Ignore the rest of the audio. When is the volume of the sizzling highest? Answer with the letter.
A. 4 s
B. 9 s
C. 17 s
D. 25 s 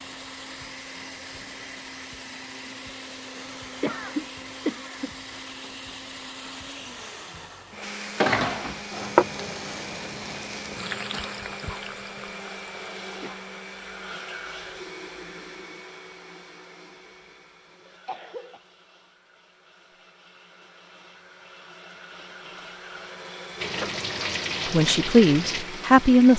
B.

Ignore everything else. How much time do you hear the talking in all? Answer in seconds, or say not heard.
2 s.